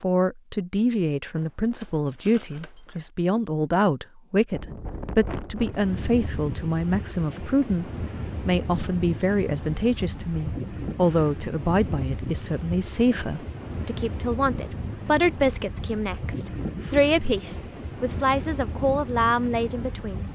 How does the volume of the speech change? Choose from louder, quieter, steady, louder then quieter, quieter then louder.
steady.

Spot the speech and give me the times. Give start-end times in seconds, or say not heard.
0.0-20.2.